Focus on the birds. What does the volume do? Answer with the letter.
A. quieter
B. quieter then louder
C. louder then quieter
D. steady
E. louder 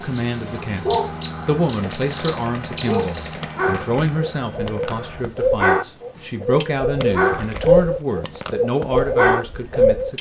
E.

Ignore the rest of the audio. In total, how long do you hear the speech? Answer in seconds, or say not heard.
10 s.